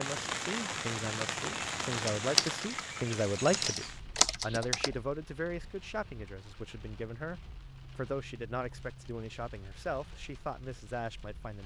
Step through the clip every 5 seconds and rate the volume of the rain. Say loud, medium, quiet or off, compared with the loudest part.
loud, quiet, quiet.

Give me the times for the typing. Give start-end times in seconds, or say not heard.
2.1-5.0.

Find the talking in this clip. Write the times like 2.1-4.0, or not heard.
0.0-11.6.